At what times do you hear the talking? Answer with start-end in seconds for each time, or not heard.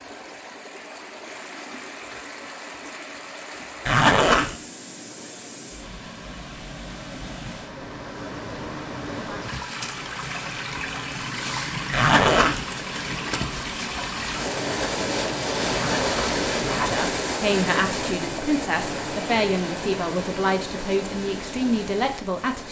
16.8-22.6.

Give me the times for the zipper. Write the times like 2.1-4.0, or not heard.
3.9-4.5, 11.9-12.7, 15.7-17.1.